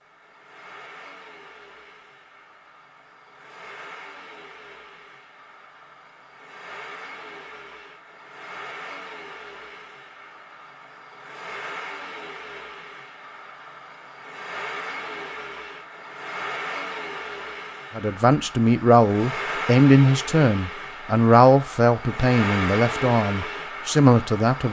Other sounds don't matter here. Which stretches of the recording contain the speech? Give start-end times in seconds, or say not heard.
17.9-24.6.